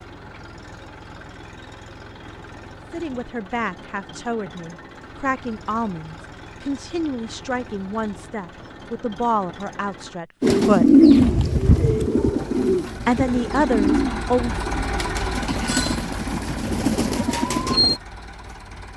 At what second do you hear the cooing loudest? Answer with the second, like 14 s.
11 s.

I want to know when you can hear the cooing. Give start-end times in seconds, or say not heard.
10.4-18.0.